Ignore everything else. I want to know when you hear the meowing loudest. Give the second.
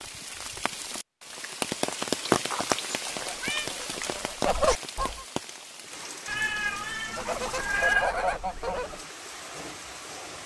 8 s.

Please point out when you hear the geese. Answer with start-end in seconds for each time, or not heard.
3.1-5.2, 7.0-9.1.